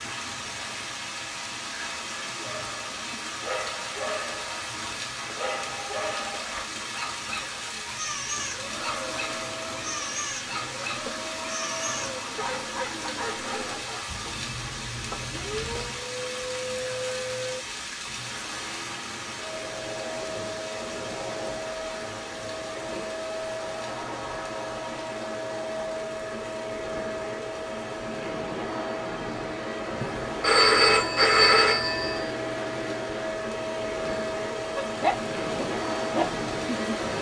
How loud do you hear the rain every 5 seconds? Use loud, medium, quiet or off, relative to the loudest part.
loud, loud, loud, loud, medium, quiet, medium, medium.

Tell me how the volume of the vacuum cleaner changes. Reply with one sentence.
The loudness of the vacuum cleaner goes up.